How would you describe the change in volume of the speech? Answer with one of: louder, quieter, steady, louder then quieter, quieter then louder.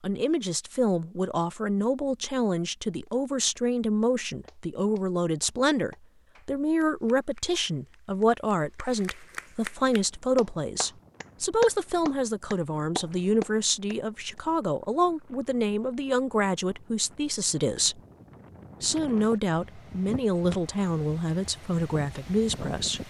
steady.